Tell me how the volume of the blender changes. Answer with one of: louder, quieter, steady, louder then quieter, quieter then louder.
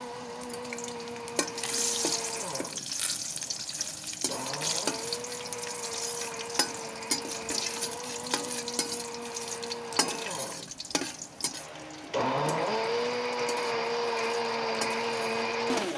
louder.